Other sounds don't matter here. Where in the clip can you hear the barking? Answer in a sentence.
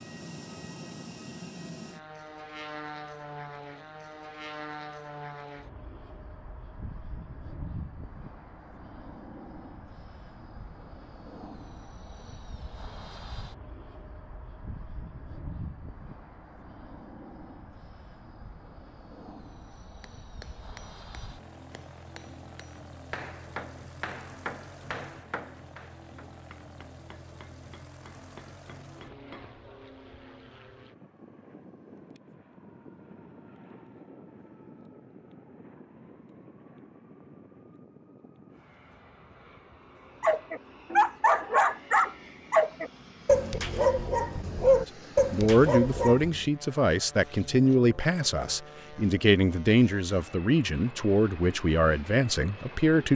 You can hear the barking from 40.2 to 46.4 s.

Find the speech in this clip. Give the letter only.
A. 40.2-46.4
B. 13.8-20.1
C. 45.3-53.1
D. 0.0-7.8
C.